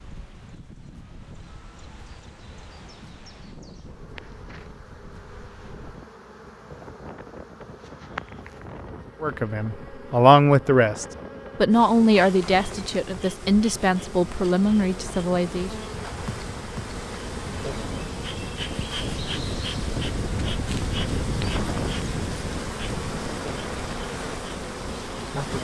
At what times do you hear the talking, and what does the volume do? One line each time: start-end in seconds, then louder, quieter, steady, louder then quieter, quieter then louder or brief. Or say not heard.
9.2-15.7 quieter.